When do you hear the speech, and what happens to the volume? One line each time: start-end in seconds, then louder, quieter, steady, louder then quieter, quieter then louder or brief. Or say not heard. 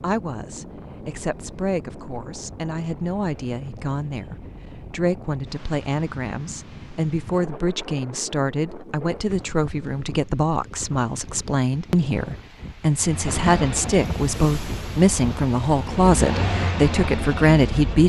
0.0-18.0 louder.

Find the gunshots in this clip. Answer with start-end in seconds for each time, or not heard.
not heard.